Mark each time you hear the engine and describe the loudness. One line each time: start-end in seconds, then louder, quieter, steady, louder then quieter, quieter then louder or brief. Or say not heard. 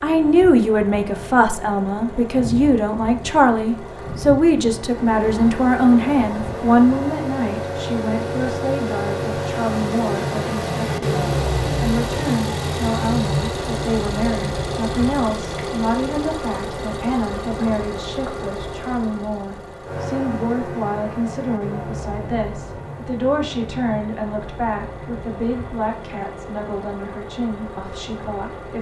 0.0-28.7 louder then quieter.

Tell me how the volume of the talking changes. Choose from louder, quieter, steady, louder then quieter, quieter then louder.
quieter.